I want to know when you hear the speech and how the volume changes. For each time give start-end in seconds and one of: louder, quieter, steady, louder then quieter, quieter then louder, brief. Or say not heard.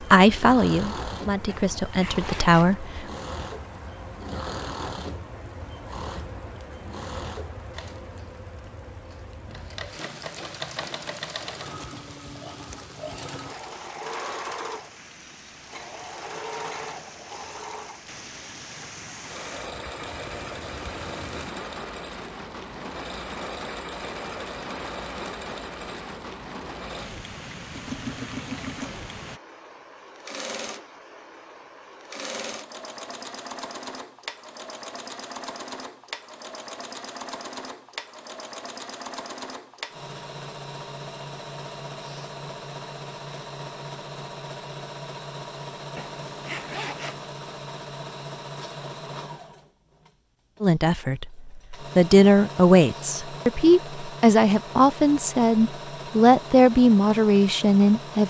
0.1-3.0 brief
50.6-58.2 steady.